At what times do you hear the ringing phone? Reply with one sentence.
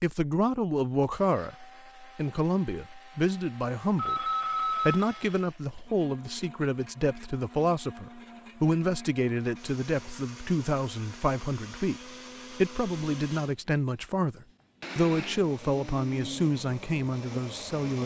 The ringing phone can be heard from 4.0 to 5.4 s.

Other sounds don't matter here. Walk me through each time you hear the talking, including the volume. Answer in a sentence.
The talking can be heard from 0.0 to 18.0 s, at a steady volume.